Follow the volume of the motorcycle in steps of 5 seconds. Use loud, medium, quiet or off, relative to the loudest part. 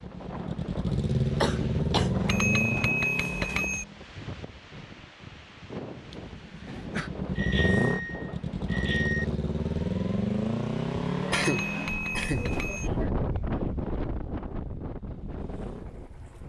loud, loud, loud, quiet.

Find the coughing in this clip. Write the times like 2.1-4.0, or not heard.
0.8-2.9, 6.1-7.1, 11.2-13.1.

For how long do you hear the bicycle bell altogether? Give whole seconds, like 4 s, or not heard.
5 s.